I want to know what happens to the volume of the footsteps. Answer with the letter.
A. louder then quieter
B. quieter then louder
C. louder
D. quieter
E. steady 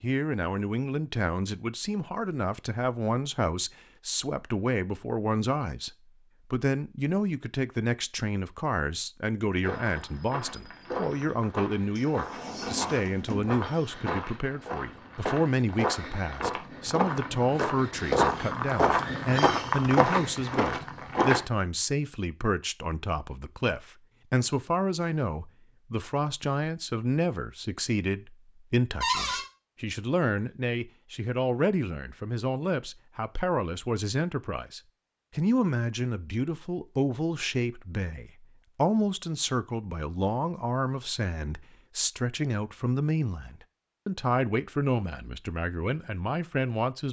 C.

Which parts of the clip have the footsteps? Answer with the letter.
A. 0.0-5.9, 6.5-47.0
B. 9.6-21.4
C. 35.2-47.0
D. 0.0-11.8
B.